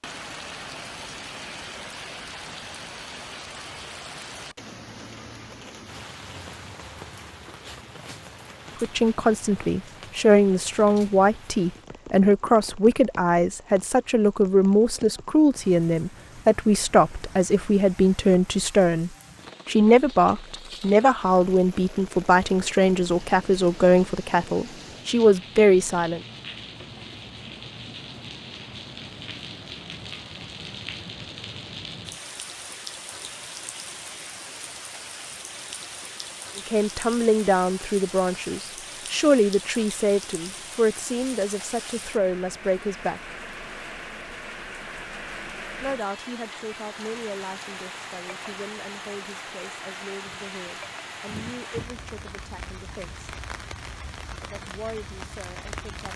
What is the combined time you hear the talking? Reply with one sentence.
The talking can be heard for 33 seconds in total.